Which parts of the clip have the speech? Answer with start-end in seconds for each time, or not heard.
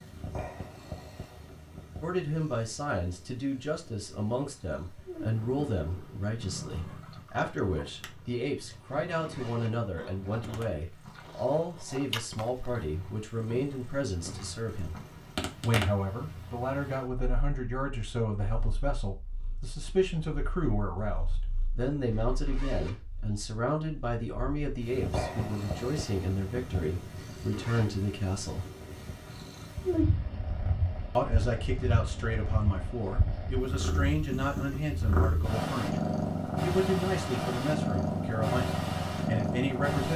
2.0-14.9, 15.6-28.6, 31.1-40.1.